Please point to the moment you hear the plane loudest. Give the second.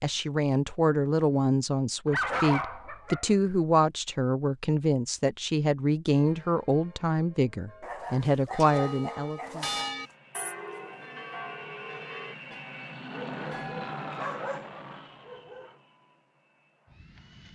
14 s.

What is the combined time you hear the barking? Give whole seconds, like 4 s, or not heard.
6 s.